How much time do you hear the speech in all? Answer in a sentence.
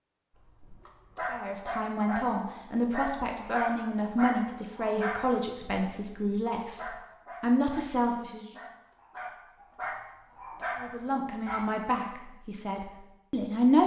You can hear the speech for 10 seconds altogether.